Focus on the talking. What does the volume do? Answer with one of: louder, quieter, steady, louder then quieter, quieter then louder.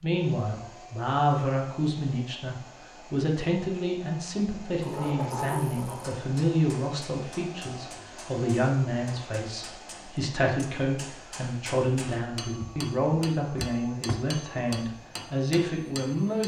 steady.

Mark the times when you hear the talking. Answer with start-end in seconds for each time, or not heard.
0.0-16.4.